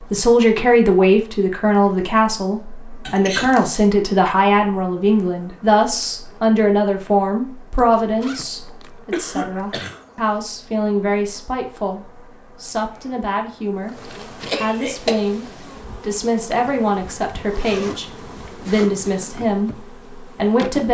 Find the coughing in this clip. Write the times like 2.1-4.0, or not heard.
3.0-3.9, 9.1-10.0, 14.4-15.2.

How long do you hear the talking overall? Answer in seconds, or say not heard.
20 s.